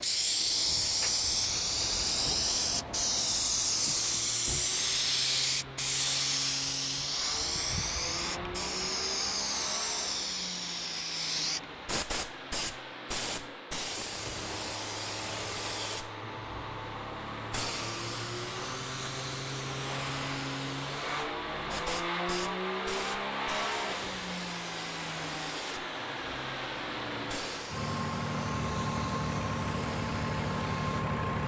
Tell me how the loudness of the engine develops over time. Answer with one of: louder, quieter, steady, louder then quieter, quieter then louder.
louder.